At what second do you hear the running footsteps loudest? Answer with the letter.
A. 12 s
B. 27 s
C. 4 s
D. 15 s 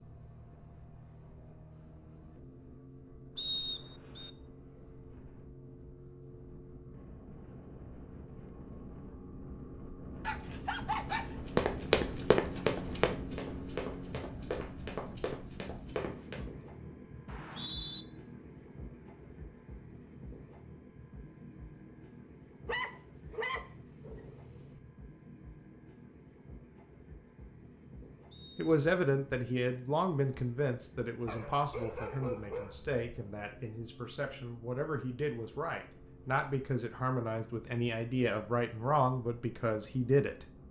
A.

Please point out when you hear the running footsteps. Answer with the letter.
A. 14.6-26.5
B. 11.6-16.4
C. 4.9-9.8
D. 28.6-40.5
B.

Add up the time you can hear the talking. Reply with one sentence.
You can hear the talking for 12 seconds altogether.